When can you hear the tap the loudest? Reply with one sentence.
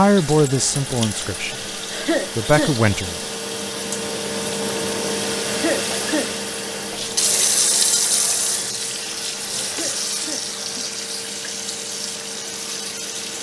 The loudest moment of the tap is at 8 seconds.